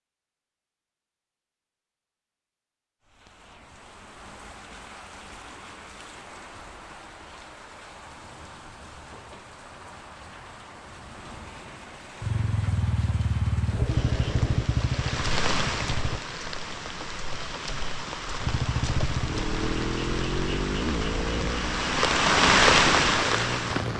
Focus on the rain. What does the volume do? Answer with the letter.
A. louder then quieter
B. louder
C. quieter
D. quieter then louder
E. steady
B.